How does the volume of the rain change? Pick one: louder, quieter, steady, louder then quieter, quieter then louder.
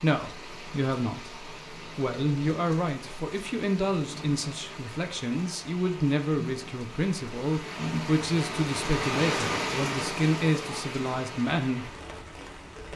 louder then quieter.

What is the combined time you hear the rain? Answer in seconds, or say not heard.
13 s.